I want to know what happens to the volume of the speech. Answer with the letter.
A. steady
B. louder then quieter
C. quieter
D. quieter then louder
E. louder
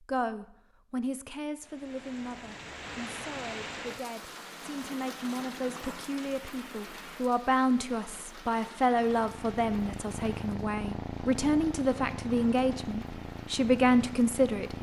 E.